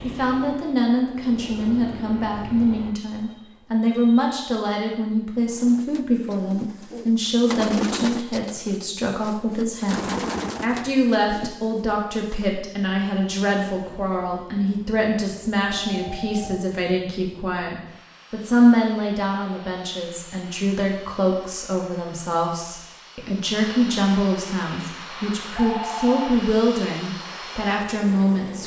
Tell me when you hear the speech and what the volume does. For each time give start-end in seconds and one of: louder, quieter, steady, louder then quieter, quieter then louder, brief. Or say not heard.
0.0-28.6 steady.